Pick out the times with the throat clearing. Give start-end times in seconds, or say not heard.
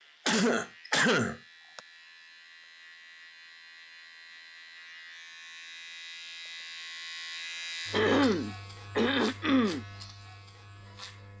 0.2-1.8, 7.9-9.8.